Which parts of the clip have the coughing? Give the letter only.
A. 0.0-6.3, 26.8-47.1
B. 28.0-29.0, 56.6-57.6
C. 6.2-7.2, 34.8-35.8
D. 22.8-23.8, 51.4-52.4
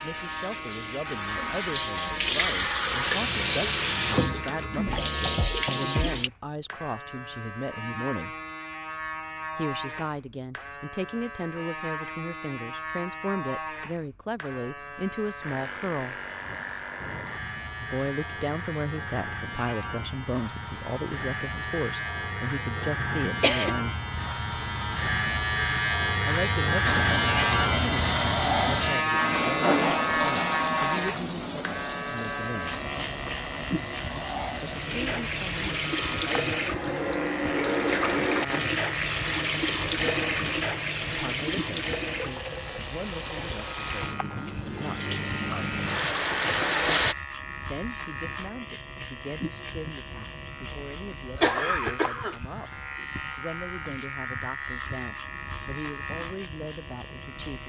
D.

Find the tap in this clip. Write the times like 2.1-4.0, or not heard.
0.0-6.3, 26.8-47.1.